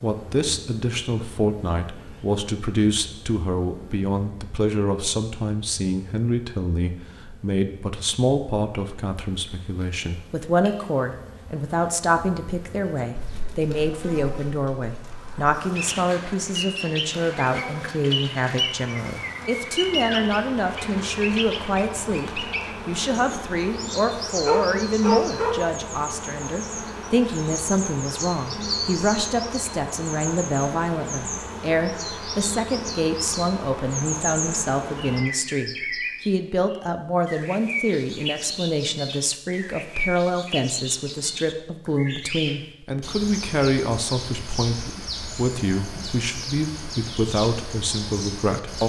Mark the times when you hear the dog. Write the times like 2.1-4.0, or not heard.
24.4-25.6.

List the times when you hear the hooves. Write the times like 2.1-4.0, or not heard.
not heard.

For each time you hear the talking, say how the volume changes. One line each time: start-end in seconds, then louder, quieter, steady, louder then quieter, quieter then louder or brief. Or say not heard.
0.0-48.8 steady.